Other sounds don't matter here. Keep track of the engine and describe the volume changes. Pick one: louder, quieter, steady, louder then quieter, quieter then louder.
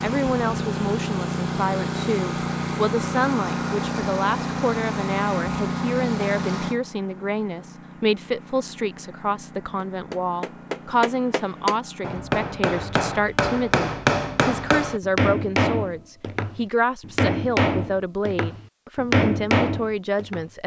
quieter.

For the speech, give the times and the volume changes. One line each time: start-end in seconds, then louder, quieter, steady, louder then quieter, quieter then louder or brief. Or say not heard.
0.0-20.6 steady.